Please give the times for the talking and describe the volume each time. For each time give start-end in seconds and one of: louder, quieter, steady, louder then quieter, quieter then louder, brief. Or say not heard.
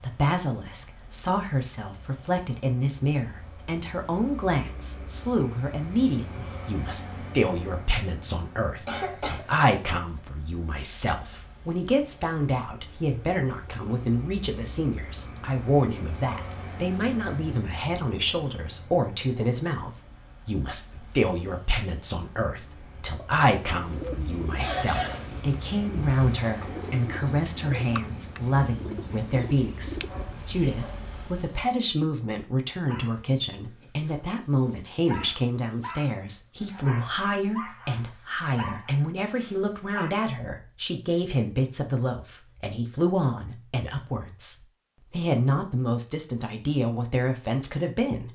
0.0-48.2 steady.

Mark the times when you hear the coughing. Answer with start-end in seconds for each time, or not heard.
8.8-9.6, 24.6-25.4, 35.0-35.5.